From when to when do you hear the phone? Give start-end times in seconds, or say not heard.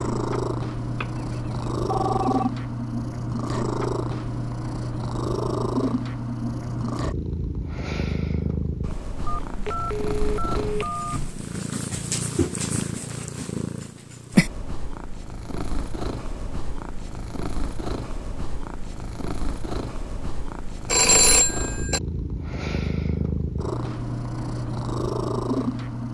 0.9-2.5, 9.2-11.4, 20.9-22.0.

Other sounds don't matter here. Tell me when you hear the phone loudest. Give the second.
21 s.